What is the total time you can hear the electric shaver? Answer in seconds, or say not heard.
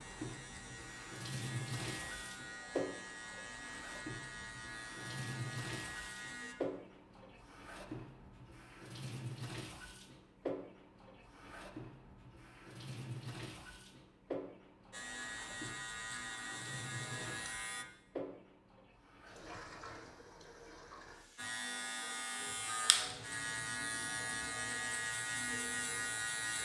15 s.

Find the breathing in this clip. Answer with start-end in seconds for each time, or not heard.
not heard.